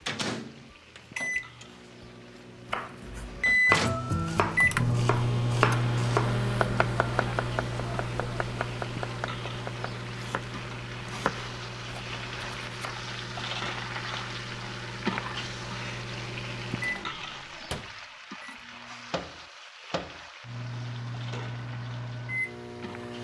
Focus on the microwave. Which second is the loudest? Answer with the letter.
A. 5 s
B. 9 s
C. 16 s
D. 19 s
A.